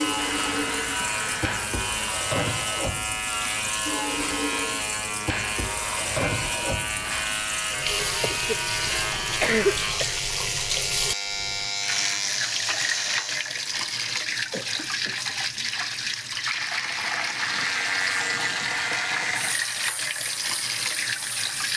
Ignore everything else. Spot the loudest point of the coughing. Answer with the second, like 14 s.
10 s.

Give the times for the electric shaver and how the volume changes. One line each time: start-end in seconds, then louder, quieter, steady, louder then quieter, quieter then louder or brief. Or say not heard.
0.0-13.6 steady
17.1-21.7 quieter.